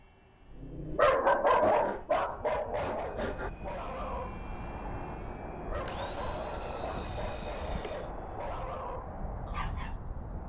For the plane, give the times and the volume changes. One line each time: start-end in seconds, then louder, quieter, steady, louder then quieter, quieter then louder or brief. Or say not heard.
0.0-10.4 louder.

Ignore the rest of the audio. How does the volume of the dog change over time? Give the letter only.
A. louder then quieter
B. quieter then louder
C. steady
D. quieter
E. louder
D.